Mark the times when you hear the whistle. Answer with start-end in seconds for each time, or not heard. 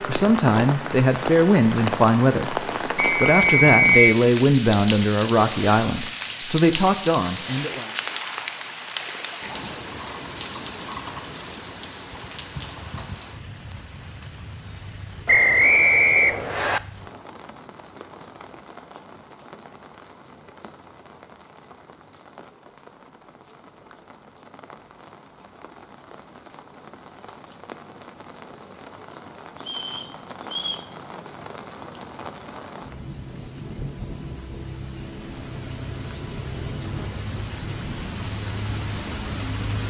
3.0-4.0, 15.2-16.8, 29.6-30.9.